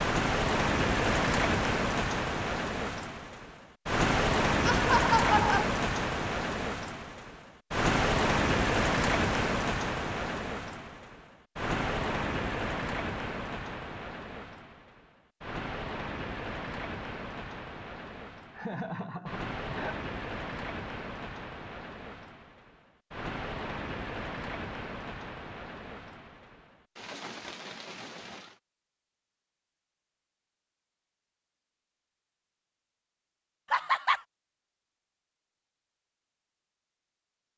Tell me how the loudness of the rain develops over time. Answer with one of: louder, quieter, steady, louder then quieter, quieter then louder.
quieter.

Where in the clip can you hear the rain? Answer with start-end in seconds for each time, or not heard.
0.0-28.6.